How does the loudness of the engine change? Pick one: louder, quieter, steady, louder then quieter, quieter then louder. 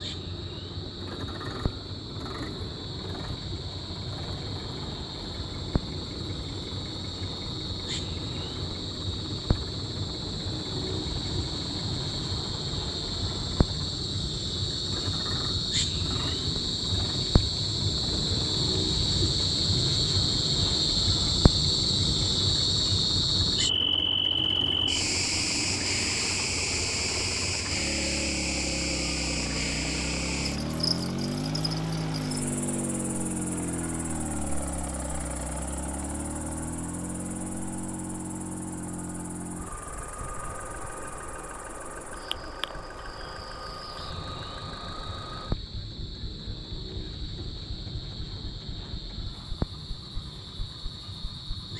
louder then quieter.